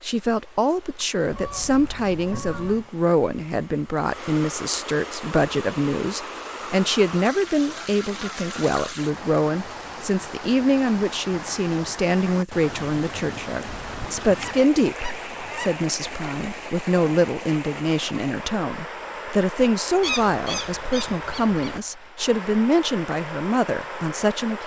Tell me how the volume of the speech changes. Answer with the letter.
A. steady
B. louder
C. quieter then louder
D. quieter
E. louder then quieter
A.